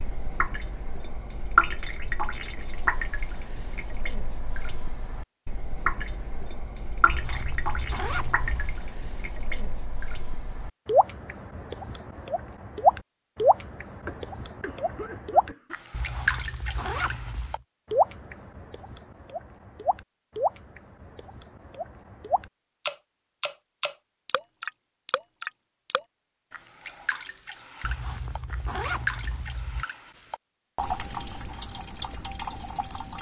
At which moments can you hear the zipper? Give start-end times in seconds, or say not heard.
7.0-8.8, 15.9-17.6, 27.8-29.9.